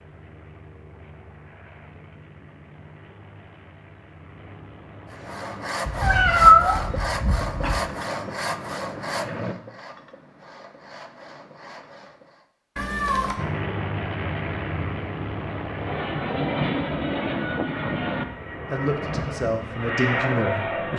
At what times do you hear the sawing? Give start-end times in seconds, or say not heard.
5.1-12.4.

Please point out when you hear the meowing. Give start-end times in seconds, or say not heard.
5.8-7.8, 12.8-13.3.